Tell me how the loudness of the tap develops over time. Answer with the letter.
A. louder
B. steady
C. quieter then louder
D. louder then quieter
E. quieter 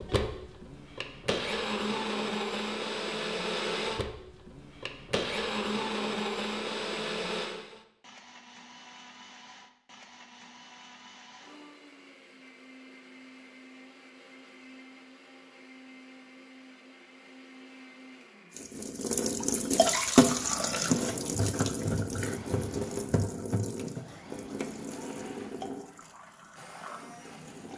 E.